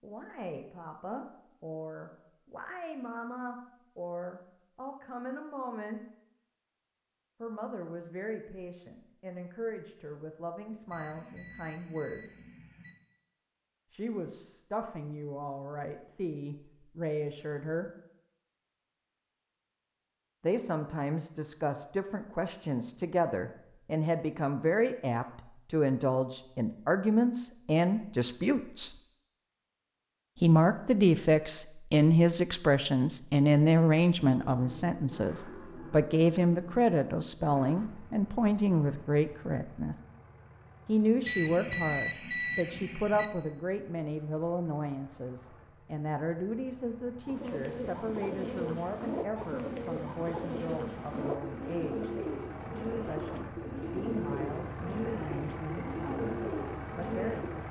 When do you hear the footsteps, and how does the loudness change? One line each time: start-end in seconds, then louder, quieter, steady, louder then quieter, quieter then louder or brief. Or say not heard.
not heard.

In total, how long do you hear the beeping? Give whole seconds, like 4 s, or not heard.
4 s.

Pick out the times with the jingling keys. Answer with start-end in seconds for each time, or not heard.
not heard.